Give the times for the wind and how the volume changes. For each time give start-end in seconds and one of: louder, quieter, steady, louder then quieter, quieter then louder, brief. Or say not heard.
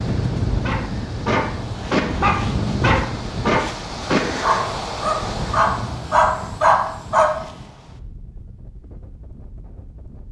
0.0-10.2 quieter.